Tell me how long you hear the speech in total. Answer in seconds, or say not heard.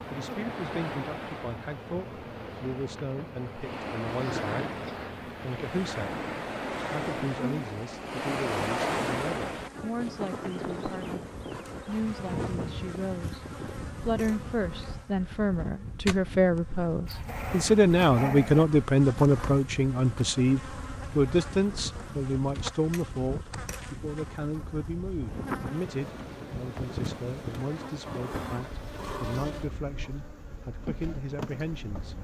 31 s.